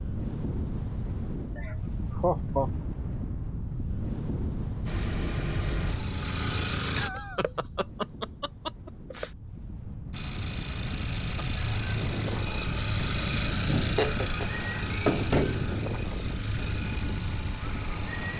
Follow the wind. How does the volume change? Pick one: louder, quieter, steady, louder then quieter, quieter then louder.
quieter then louder.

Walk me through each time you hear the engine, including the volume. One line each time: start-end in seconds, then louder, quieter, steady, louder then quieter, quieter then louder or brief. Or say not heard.
4.8-7.1 brief
10.1-18.3 louder then quieter.